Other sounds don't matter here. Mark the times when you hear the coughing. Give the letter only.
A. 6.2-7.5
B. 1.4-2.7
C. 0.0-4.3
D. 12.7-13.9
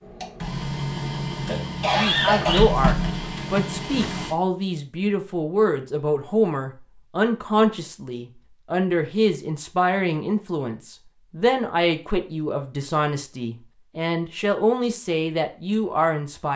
B.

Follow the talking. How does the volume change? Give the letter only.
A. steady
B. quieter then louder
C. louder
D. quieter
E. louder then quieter
A.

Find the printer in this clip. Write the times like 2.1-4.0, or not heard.
0.0-4.3.